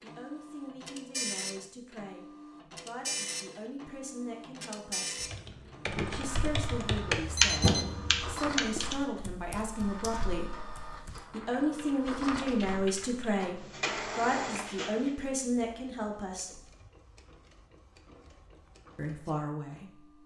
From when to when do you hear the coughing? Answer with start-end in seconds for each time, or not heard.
not heard.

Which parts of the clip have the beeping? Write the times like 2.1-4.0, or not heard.
7.2-8.4.